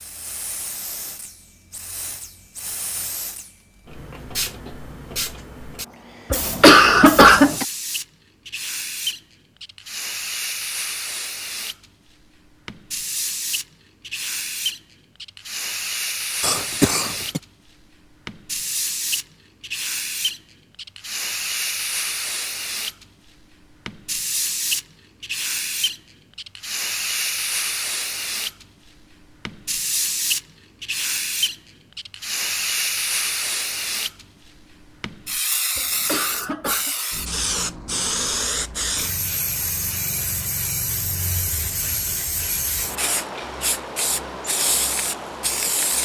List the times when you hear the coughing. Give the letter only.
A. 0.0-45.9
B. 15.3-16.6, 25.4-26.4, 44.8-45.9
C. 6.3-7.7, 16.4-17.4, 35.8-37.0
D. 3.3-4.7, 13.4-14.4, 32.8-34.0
C.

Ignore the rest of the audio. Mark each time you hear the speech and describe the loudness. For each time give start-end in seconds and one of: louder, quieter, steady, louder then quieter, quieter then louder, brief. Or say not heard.
not heard.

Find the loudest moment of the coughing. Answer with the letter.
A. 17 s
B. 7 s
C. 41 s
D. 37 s
B.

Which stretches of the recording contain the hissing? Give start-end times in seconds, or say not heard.
0.0-45.9.